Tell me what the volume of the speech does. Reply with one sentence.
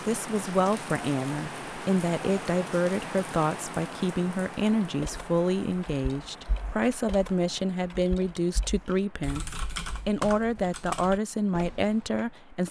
The volume of the speech stays about the same.